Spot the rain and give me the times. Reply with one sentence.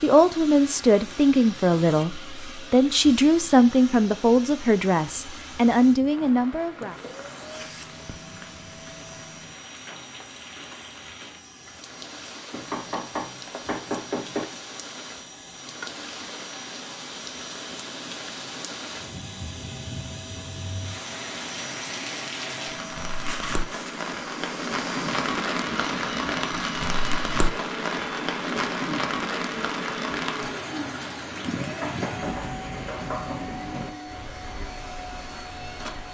You can hear the rain from 6.0 to 36.0 s.